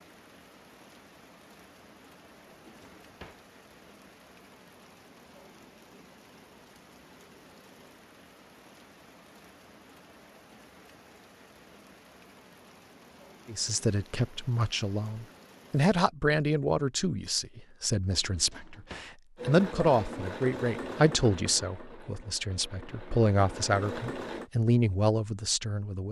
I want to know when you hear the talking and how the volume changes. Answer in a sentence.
The talking can be heard from 13.4 to 26.0 s, at a steady volume.